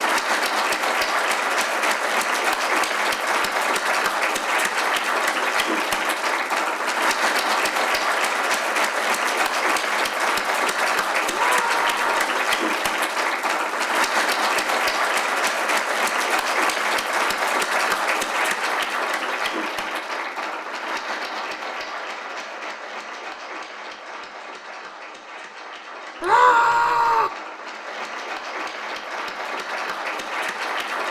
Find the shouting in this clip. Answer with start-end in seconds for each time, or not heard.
11.2-12.3, 26.2-27.3.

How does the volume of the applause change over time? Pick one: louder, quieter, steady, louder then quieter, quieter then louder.
quieter.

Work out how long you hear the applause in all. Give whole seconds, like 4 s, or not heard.
31 s.